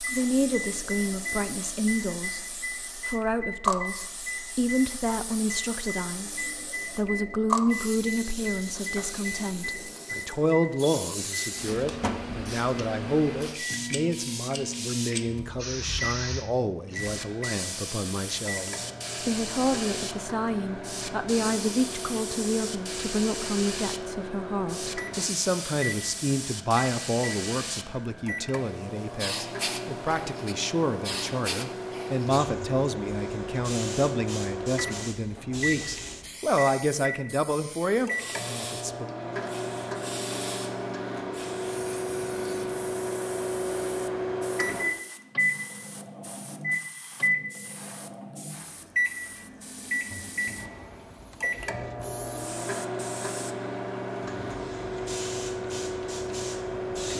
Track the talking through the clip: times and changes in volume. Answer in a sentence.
You can hear the talking from 0.0 to 39.0 s, at a steady volume.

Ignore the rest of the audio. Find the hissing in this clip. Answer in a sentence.
The hissing can be heard from 0.0 to 57.1 s.